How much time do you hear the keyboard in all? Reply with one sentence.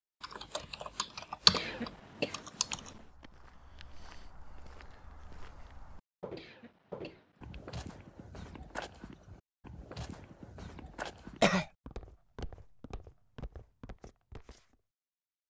The keyboard can be heard for 3 seconds in total.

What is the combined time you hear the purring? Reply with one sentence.
The purring can't be heard in this clip.